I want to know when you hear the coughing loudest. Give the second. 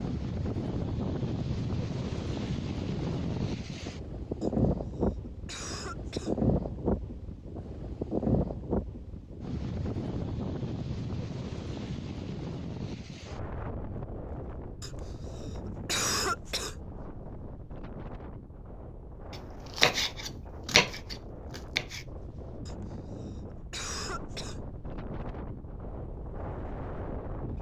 16 s.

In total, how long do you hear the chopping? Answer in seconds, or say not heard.
3 s.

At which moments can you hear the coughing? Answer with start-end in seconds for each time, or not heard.
4.4-6.3, 14.8-16.8, 22.6-24.6.